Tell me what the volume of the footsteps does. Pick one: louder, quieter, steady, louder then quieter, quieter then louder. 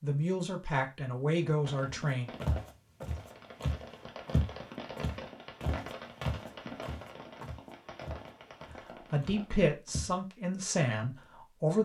quieter.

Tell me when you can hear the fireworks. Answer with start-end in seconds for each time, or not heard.
1.4-9.7.